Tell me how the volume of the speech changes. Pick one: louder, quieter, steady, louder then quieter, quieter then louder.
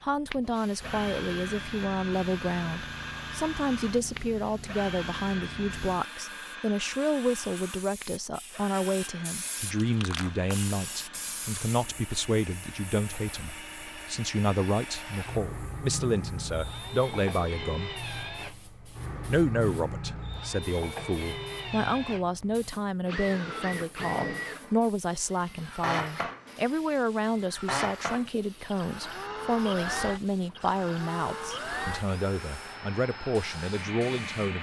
steady.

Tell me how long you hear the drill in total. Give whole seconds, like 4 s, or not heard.
34 s.